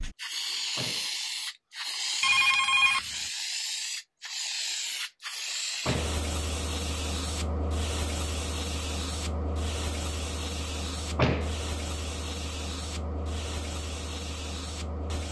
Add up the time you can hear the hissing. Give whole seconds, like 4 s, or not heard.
15 s.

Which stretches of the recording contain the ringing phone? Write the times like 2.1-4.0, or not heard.
2.2-3.0.